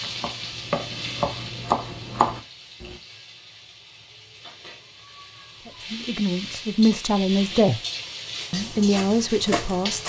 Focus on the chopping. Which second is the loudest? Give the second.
2 s.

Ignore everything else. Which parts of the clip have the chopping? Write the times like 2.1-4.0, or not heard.
0.0-3.0, 8.3-10.0.